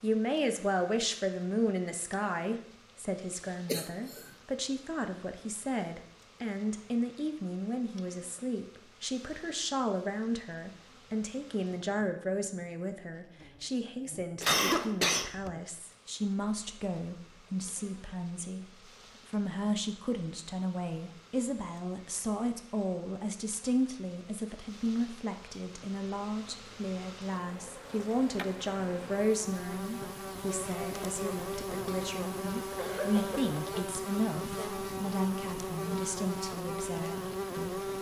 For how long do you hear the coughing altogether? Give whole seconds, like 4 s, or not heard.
2 s.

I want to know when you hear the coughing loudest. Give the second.
15 s.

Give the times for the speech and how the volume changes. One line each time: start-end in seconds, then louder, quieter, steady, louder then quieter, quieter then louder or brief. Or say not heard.
0.0-37.8 steady.